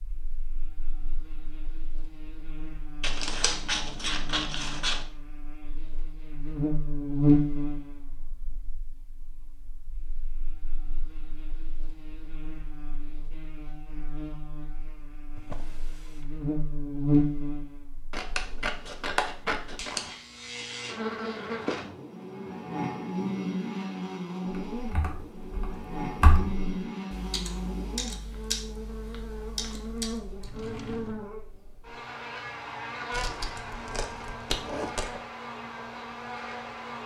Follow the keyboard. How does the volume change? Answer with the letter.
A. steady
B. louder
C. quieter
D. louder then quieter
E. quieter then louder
D.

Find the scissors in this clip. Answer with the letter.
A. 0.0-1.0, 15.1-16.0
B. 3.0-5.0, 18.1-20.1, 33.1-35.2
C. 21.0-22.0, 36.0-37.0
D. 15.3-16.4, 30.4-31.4
B.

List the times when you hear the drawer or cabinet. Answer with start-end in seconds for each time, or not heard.
15.3-16.4, 30.4-31.4.